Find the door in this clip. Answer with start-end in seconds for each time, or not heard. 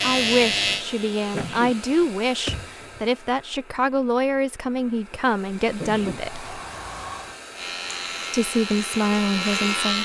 1.4-3.0, 6.1-7.4.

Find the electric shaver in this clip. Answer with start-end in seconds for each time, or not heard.
0.0-2.1, 7.5-10.0.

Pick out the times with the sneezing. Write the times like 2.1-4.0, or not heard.
1.3-1.8, 5.8-6.2.